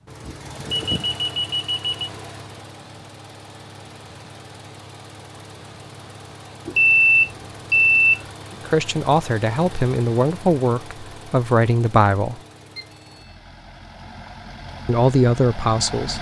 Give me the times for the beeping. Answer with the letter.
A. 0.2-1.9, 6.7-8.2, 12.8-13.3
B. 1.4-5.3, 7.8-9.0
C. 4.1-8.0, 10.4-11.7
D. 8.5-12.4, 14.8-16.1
A.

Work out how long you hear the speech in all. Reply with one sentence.
The speech can be heard for 5 seconds in total.